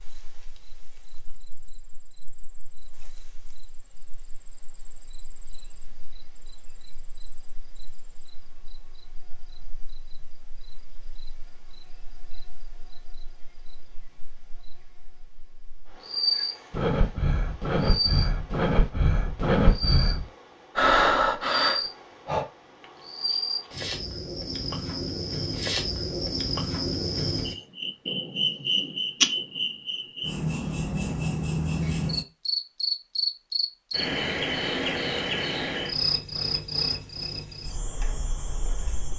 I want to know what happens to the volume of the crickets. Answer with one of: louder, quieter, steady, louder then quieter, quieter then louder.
louder.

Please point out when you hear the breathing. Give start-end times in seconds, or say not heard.
16.4-22.4.